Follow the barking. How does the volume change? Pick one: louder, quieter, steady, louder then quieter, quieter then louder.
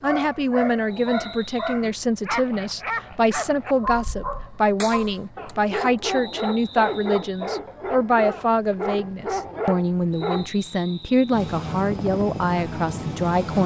steady.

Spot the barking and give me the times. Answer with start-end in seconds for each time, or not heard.
0.0-10.5.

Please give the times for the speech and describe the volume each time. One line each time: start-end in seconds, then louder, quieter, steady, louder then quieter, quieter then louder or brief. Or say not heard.
0.0-13.6 steady.